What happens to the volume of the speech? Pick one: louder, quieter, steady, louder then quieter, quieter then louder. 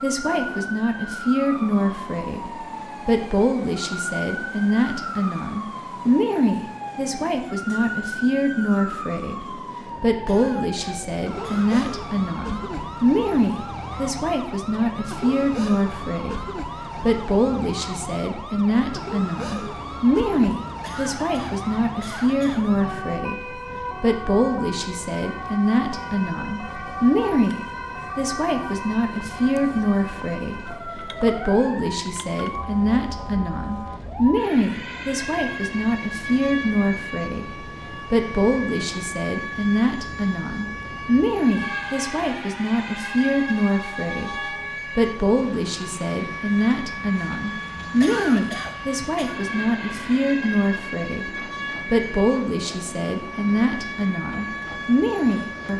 steady.